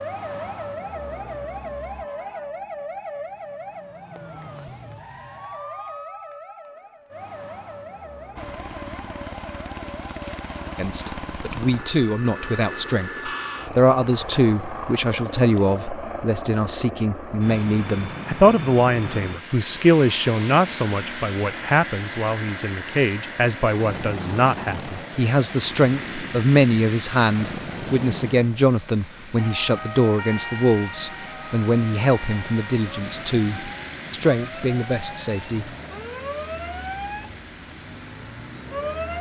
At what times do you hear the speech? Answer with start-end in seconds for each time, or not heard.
10.8-35.6.